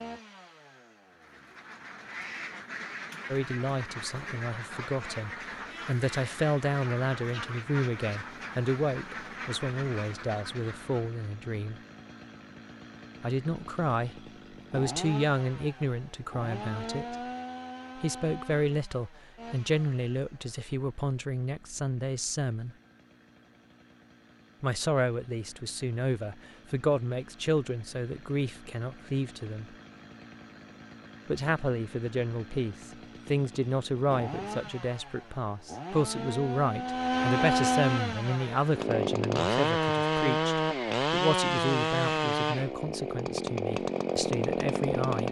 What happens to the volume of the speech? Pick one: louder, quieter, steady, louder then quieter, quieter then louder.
steady.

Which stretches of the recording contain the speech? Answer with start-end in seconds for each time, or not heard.
3.3-11.8, 13.2-17.1, 17.9-22.8, 24.6-29.8, 31.2-45.2.